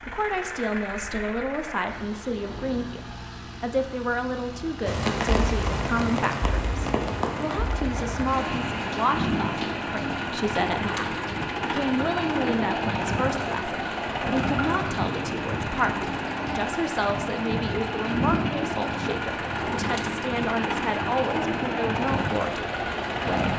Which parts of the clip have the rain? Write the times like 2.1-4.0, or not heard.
4.8-23.5.